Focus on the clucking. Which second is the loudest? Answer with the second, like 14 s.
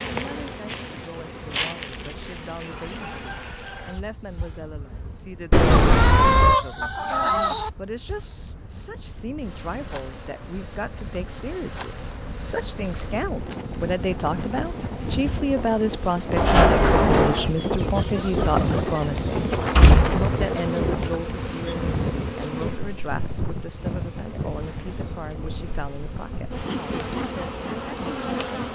6 s.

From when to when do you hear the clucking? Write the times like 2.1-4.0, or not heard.
5.7-7.7, 17.9-19.7.